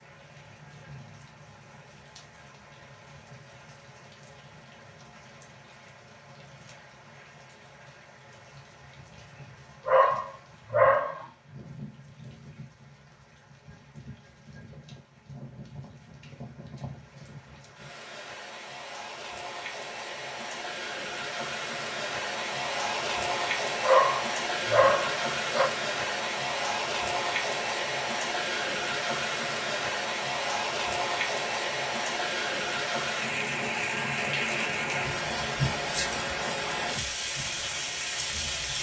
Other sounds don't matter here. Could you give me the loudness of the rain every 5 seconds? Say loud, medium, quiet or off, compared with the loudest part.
quiet, quiet, quiet, quiet, loud, loud, loud, loud.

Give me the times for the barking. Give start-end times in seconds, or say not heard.
9.8-11.2, 23.8-25.7.